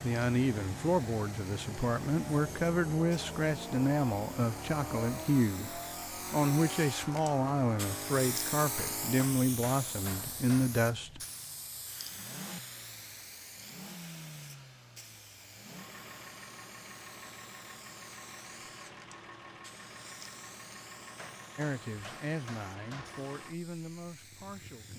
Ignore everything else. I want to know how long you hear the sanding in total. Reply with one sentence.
You can't hear the sanding here.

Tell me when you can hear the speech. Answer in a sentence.
You can hear the speech from 0.0 to 11.2 s and from 21.6 to 24.9 s.